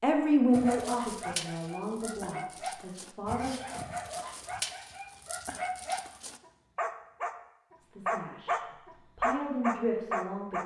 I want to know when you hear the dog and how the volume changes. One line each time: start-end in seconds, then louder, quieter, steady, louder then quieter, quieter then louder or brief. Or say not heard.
0.5-10.6 louder.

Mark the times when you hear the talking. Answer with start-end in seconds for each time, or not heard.
0.0-3.6, 7.8-10.6.